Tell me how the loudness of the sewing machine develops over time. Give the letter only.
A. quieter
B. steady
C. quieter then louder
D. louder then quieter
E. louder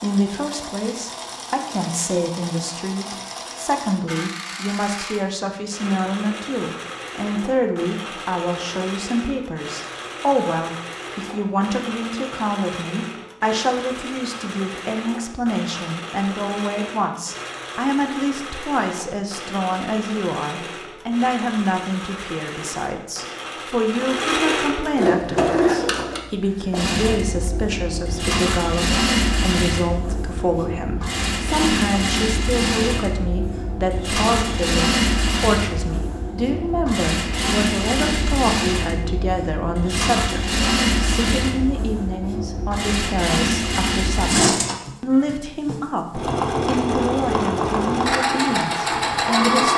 E.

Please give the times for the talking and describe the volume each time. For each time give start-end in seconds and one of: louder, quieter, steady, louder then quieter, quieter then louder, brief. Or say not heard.
0.0-49.7 steady.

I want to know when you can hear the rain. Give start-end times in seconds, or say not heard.
not heard.